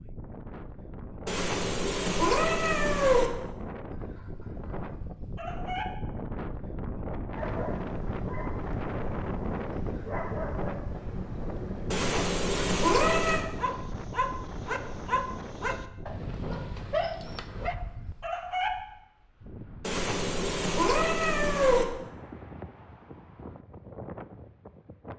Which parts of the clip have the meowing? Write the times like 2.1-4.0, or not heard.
1.2-3.3, 11.9-13.4, 19.8-21.9.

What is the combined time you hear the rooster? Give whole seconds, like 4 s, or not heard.
4 s.